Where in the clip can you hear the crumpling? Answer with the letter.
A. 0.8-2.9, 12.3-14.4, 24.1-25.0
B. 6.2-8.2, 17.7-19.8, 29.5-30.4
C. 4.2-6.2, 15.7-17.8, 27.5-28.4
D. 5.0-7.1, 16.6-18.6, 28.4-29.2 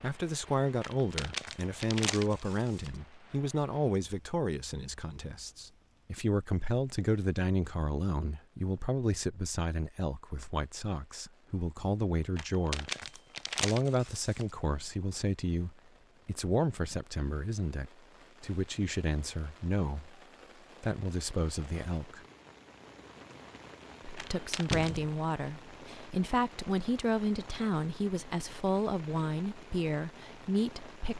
A.